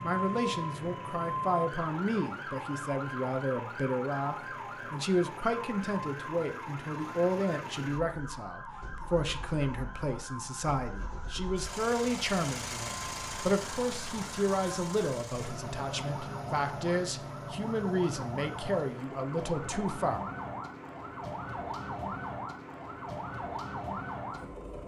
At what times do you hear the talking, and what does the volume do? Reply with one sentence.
You can hear the talking from 0.0 to 20.2 s, at a steady volume.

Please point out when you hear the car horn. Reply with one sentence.
You can't hear the car horn here.